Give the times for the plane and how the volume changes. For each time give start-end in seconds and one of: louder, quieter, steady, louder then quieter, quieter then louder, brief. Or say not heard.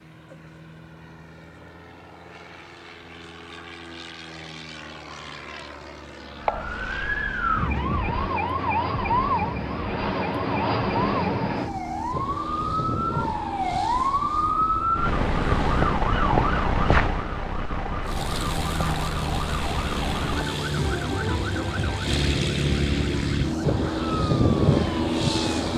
0.0-15.9 louder then quieter
18.0-25.7 louder.